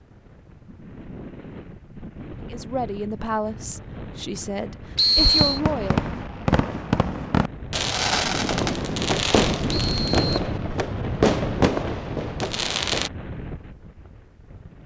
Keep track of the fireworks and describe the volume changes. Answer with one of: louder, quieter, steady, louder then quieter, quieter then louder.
steady.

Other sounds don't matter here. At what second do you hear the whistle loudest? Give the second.
5 s.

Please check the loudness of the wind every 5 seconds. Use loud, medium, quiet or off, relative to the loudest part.
medium, loud, loud.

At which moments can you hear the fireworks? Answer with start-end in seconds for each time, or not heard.
5.2-13.1.